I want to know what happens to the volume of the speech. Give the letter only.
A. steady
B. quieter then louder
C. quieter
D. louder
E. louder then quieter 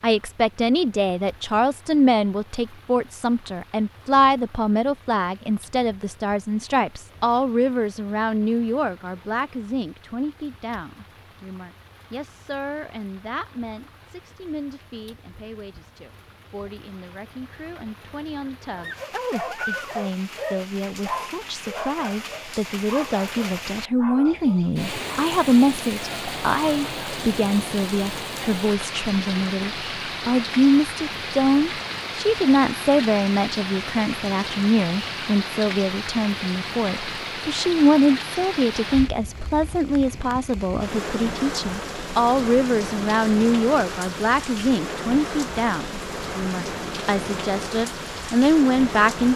B.